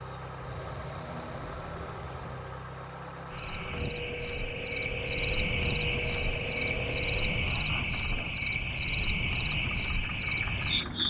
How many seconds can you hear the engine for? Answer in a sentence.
You can hear the engine for 11 seconds altogether.